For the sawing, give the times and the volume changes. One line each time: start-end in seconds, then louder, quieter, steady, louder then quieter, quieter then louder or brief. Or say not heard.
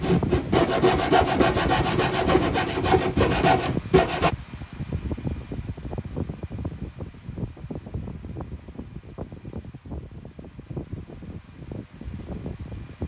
0.0-4.3 steady.